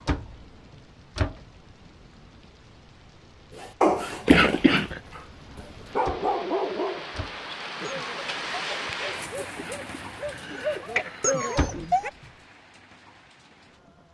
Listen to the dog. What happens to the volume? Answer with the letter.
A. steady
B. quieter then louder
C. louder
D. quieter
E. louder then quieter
B.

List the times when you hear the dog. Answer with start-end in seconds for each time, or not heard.
3.6-12.1.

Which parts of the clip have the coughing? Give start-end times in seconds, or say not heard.
4.2-5.0, 9.6-11.6.